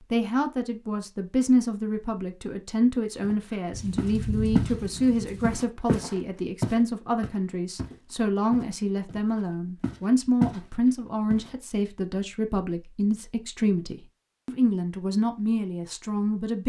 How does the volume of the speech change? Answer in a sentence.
The volume of the speech stays about the same.